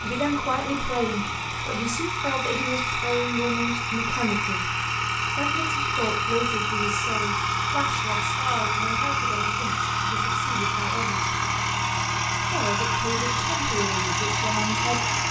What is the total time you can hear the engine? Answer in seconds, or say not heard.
15 s.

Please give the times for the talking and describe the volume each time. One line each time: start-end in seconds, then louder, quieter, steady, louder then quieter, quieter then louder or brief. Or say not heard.
0.0-11.3 quieter
12.4-15.2 brief.